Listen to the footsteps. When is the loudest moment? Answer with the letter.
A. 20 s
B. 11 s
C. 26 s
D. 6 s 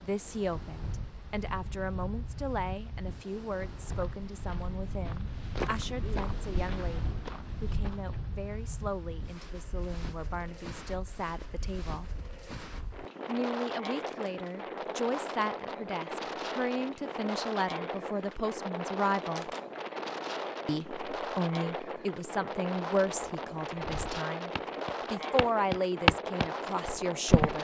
C.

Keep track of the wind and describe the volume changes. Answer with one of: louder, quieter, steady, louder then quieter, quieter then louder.
louder.